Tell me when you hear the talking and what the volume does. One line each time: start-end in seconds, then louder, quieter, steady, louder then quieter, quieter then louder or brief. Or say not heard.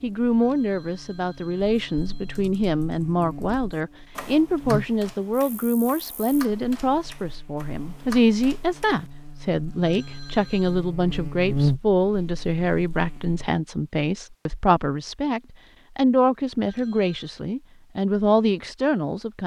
0.0-19.4 steady.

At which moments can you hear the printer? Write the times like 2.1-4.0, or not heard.
not heard.